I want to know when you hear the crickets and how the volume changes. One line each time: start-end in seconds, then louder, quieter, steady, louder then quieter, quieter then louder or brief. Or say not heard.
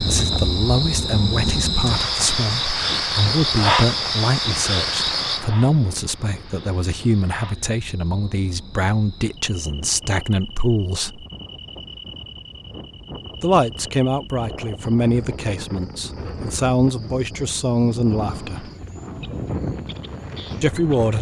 0.0-21.1 quieter.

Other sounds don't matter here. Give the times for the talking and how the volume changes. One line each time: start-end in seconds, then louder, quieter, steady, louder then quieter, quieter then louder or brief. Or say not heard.
0.1-11.2 steady
13.4-18.7 quieter then louder
20.6-21.1 brief.